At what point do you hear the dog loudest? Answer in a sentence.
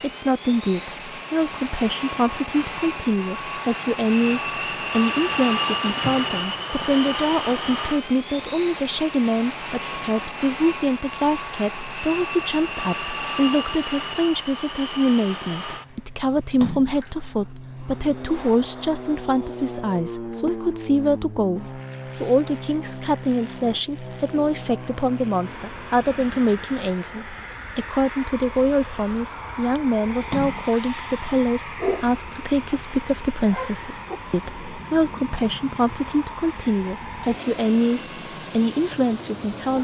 The volume of the dog peaks at 32 seconds.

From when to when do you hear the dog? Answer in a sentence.
You can hear the dog from 31.8 to 34.2 s.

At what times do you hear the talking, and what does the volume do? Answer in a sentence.
The talking can be heard from 0.0 to 39.7 s, at a steady volume.